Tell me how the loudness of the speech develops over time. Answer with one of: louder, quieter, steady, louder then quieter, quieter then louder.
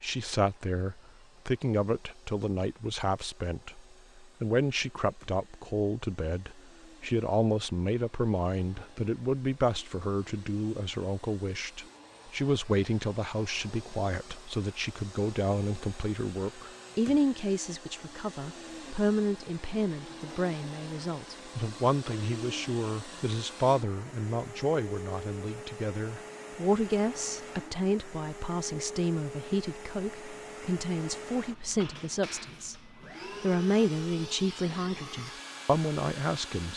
steady.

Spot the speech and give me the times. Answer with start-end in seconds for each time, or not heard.
0.0-32.8, 33.4-36.7.